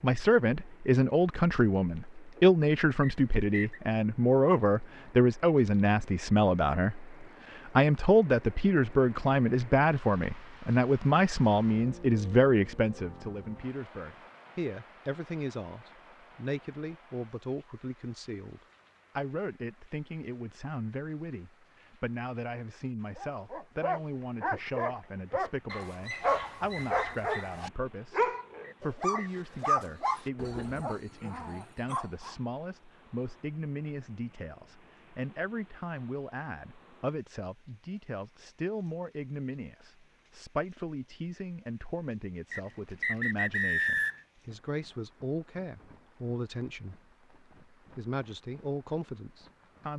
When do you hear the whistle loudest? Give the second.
44 s.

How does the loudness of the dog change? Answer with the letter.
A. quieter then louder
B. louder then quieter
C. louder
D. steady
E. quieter
E.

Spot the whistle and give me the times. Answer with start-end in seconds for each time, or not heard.
3.0-3.8, 28.6-29.4, 42.5-44.2.